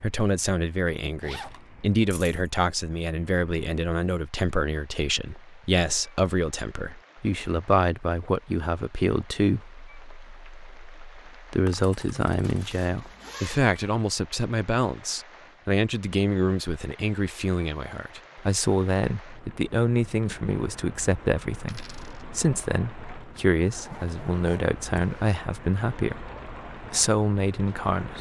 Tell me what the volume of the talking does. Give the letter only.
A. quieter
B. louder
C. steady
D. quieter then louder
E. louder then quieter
C.